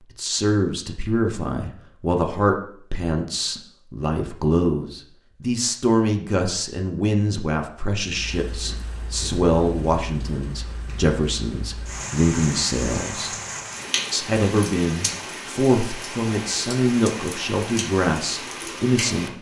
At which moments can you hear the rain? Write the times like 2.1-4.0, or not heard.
8.1-19.3.